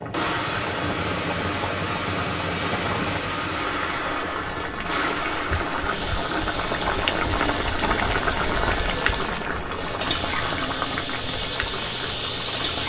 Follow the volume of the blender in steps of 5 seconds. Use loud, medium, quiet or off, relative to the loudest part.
loud, medium, loud.